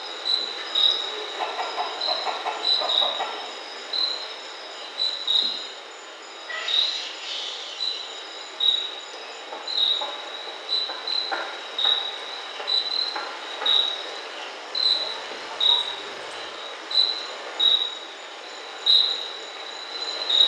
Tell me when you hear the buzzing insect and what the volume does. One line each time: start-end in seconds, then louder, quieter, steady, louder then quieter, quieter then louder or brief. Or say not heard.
0.0-20.4 steady.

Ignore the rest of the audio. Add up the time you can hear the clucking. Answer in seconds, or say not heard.
4 s.